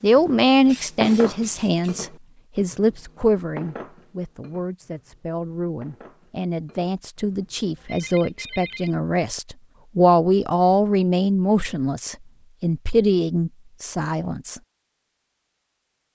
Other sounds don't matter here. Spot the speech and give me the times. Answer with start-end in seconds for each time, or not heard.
0.0-14.6.